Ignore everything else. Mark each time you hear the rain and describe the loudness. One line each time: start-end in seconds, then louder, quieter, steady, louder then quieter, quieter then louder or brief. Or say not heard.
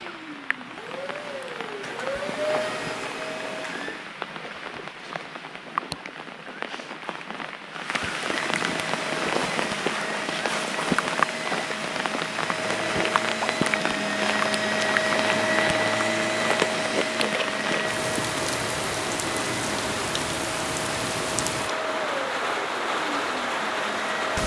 0.0-24.4 louder.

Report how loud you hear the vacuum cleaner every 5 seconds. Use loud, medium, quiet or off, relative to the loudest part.
medium, medium, loud, loud, medium.